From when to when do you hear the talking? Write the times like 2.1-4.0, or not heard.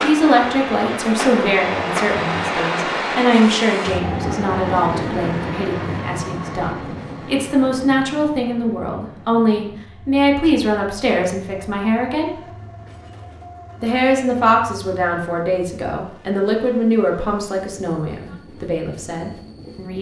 0.0-12.3, 13.8-19.9.